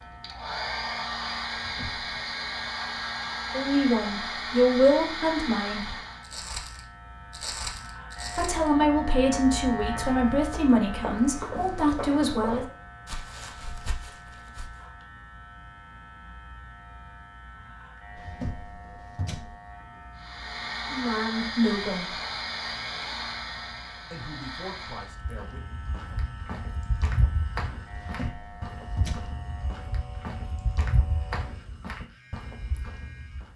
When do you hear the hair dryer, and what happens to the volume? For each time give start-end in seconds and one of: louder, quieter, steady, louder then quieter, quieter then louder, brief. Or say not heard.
0.0-6.3 steady
20.1-25.1 quieter.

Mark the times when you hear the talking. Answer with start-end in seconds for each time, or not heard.
3.5-6.0, 8.3-12.7, 20.9-22.1, 24.1-25.8.